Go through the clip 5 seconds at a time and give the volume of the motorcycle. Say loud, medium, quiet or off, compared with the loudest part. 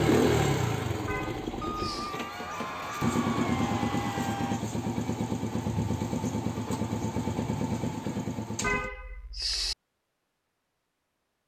loud, loud, off.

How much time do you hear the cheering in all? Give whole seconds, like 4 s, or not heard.
3 s.